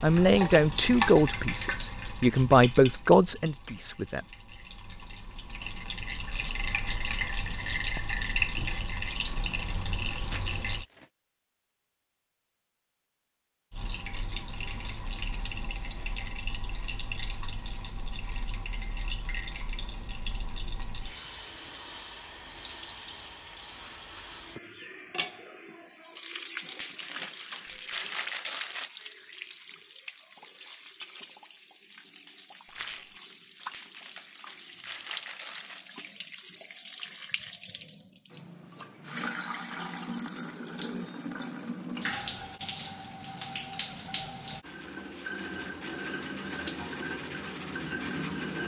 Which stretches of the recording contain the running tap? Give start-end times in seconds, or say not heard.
0.0-10.8, 13.7-48.6.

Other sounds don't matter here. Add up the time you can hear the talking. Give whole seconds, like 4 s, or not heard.
4 s.